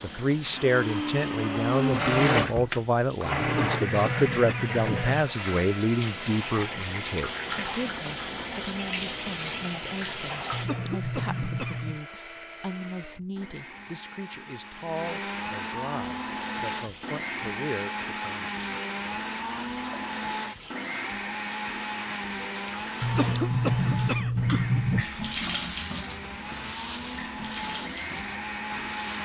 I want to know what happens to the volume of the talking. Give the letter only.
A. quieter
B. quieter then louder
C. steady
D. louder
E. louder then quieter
A.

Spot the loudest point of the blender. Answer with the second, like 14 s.
2 s.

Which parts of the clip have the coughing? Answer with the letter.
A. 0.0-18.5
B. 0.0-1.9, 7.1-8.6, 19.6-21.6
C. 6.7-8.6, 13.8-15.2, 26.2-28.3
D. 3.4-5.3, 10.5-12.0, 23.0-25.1
D.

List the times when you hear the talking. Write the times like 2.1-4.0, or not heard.
0.0-18.5.